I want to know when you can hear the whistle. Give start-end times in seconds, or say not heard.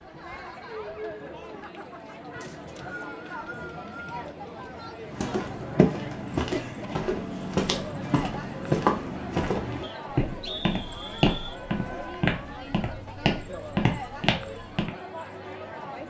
2.4-4.0, 9.8-11.6.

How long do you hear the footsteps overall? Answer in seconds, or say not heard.
10 s.